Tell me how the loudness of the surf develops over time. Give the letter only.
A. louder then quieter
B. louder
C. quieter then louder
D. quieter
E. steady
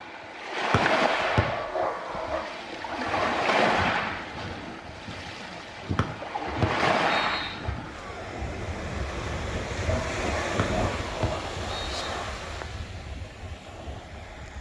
D.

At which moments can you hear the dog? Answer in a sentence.
You can hear the dog from 1.1 to 2.6 s and from 9.8 to 11.6 s.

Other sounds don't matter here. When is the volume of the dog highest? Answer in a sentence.
The volume of the dog peaks at 2 seconds.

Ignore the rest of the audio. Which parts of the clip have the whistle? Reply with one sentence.
The whistle can be heard from 0.7 to 1.4 s, from 6.0 to 7.5 s and from 10.6 to 11.9 s.